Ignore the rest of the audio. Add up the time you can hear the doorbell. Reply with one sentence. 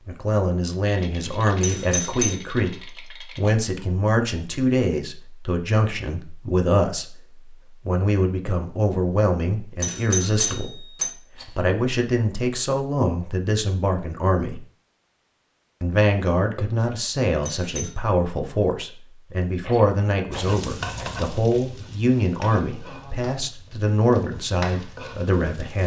The doorbell can be heard for 3 seconds in total.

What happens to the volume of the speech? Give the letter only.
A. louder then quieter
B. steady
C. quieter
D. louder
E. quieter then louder
B.